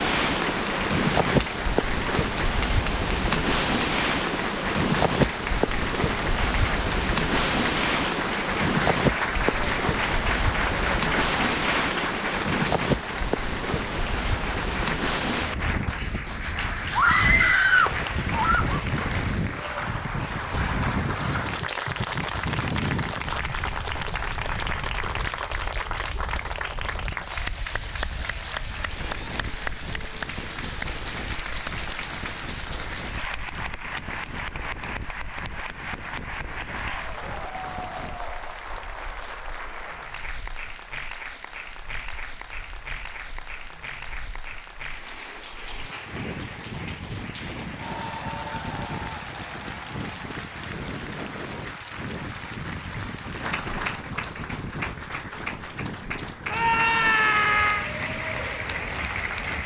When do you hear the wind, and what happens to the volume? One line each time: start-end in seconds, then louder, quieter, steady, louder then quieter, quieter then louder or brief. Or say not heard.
0.0-59.6 quieter then louder.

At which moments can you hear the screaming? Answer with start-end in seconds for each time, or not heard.
16.9-18.8, 56.5-57.9.